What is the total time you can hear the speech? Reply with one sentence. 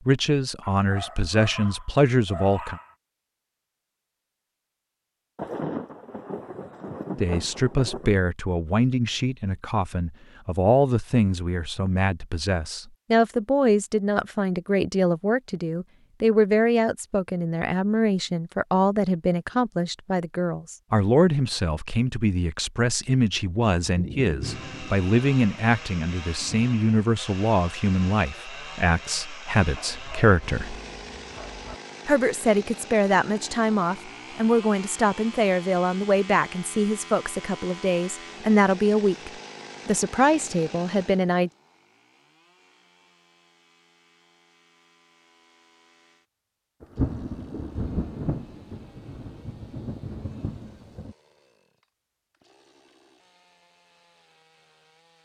You can hear the speech for 36 seconds altogether.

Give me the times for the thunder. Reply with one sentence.
The thunder can be heard from 5.3 to 8.2 s, from 23.9 to 26.7 s and from 46.8 to 51.1 s.